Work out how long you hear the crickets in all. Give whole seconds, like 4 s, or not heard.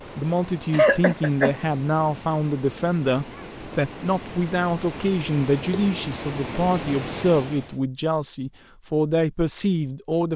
not heard.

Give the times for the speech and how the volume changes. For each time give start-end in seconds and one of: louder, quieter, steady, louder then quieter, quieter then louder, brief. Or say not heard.
0.1-10.3 steady.